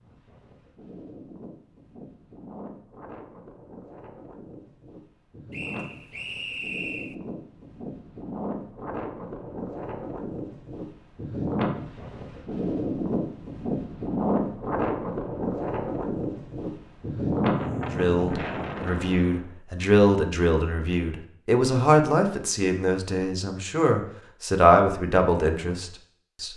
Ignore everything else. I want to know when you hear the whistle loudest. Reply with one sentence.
The volume of the whistle peaks at 7 seconds.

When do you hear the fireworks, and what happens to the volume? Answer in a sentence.
The fireworks can't be heard in this clip.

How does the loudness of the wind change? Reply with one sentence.
The volume of the wind goes up.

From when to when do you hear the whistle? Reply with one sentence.
The whistle can be heard from 5.5 to 7.2 s.